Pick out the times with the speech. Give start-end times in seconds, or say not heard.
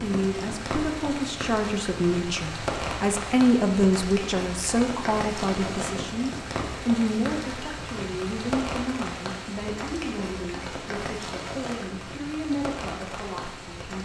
0.0-14.0.